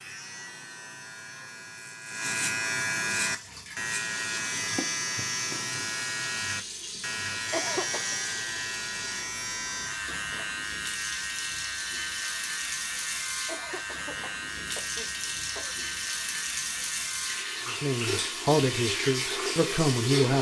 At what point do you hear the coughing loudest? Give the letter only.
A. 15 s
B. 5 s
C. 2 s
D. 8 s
D.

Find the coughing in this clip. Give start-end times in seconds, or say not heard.
7.3-8.2, 13.2-15.8.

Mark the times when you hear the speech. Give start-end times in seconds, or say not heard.
17.6-20.3.